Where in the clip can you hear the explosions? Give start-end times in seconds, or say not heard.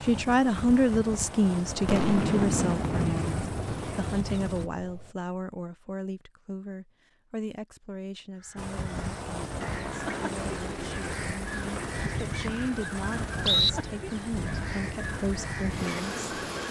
1.8-5.1.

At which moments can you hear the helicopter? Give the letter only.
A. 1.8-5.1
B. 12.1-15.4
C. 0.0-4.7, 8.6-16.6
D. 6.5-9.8
C.